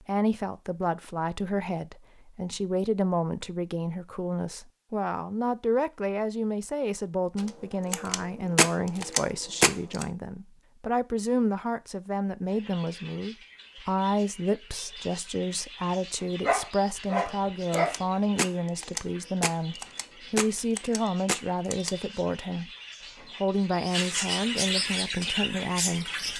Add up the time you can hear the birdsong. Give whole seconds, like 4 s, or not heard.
14 s.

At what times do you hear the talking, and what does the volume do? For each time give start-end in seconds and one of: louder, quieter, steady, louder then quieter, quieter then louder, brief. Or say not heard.
0.1-22.7 steady
23.4-26.1 brief.